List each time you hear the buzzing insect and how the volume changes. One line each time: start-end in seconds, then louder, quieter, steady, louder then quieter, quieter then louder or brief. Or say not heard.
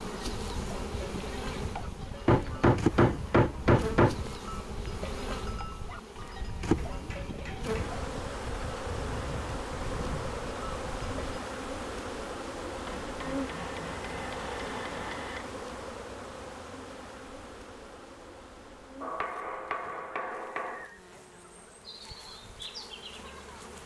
0.0-23.8 quieter.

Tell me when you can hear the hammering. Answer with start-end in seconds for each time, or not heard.
2.2-4.3, 6.8-8.0, 12.8-15.5, 19.0-20.9.